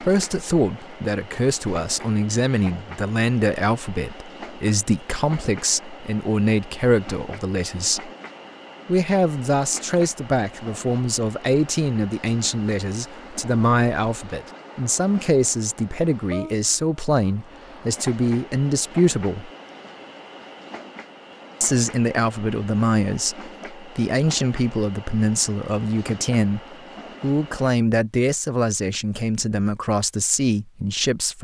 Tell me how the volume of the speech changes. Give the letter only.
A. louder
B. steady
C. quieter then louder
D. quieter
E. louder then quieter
B.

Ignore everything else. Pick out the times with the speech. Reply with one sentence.
The speech can be heard from 0.0 to 8.1 s, from 8.8 to 19.5 s, from 21.6 to 26.6 s and from 27.2 to 31.3 s.